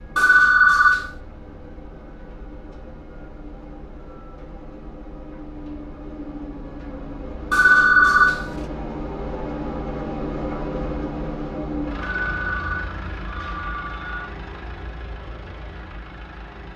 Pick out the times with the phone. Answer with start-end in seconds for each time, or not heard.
0.1-1.1, 7.5-8.4, 12.0-14.3.